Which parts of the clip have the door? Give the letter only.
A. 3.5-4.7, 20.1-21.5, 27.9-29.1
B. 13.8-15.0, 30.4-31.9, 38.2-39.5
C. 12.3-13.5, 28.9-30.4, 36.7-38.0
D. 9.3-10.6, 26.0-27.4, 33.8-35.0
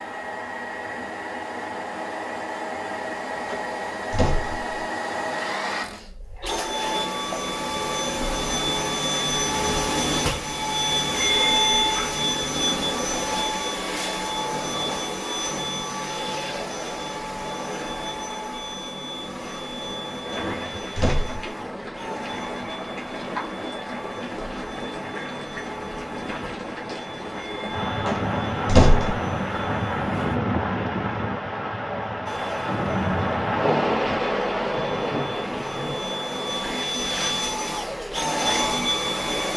A.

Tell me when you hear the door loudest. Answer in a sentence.
The loudest moment of the door is at 29 seconds.